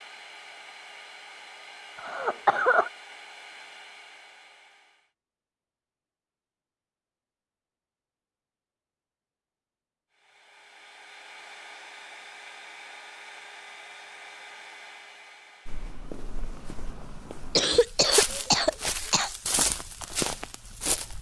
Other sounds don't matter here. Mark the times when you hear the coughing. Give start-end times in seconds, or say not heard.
1.9-2.9, 17.6-19.3.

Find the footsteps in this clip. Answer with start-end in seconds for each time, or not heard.
15.7-21.1.